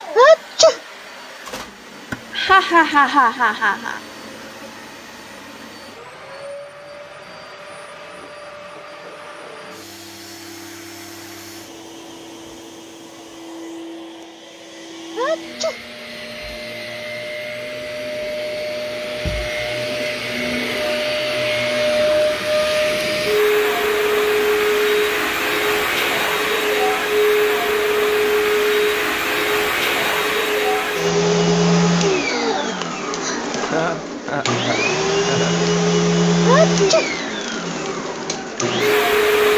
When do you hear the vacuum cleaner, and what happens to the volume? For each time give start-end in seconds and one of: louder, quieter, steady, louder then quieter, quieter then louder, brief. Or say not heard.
0.0-39.5 louder.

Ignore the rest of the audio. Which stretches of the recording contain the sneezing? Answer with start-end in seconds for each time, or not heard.
0.1-0.8, 15.2-15.8, 36.5-37.1.